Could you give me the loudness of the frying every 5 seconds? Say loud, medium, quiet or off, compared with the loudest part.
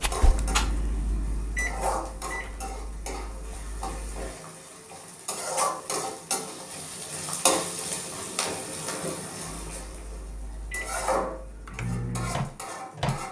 medium, loud, loud.